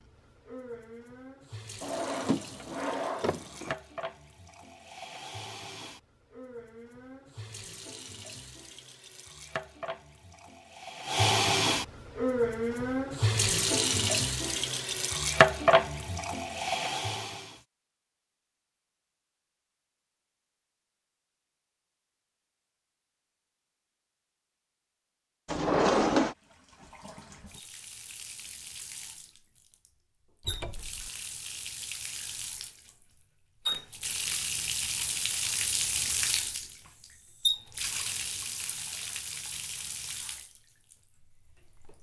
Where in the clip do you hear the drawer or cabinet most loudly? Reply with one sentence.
The volume of the drawer or cabinet peaks at 26 seconds.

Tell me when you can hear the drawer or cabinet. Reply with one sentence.
The drawer or cabinet can be heard from 1.8 to 3.8 s, from 25.4 to 26.4 s and from 30.4 to 31.1 s.